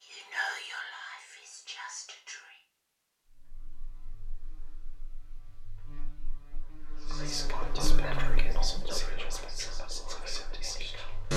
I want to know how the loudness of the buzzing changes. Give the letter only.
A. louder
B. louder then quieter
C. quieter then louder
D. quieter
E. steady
B.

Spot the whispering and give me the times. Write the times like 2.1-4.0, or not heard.
0.0-2.6, 7.0-11.3.